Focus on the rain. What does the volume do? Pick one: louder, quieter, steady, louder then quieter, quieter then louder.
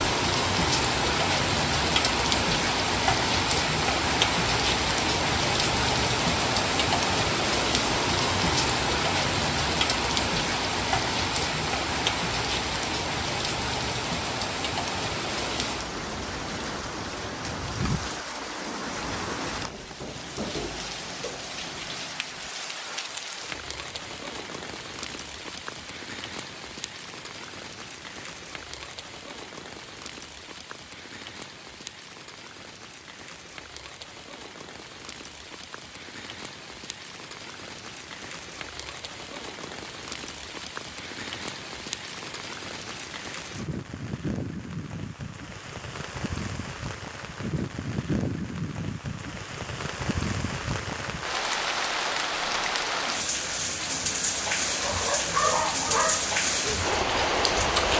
quieter then louder.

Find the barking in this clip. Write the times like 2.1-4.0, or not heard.
54.7-57.9.